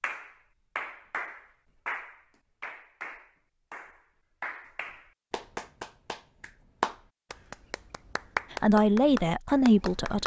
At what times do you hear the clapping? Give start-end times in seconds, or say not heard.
0.0-10.2.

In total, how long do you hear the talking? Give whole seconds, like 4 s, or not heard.
2 s.